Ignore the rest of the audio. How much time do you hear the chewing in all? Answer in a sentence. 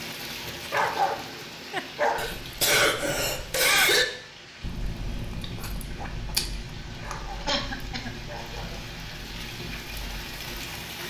The chewing can be heard for 6 seconds in total.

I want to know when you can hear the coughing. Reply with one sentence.
You can hear the coughing from 2.1 to 4.0 s and from 7.5 to 8.1 s.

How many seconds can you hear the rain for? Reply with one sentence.
The rain can be heard for 11 seconds in total.